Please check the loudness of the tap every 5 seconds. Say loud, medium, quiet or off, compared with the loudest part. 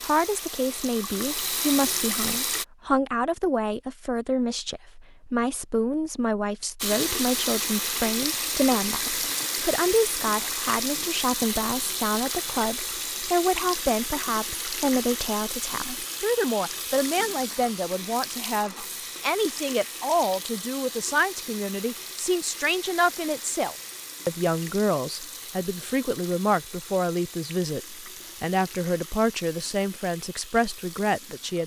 loud, loud, loud, medium, medium, quiet, quiet.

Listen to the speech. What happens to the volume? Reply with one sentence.
The loudness of the speech stays about the same.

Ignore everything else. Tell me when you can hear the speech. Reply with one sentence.
You can hear the speech from 0.0 to 31.6 s.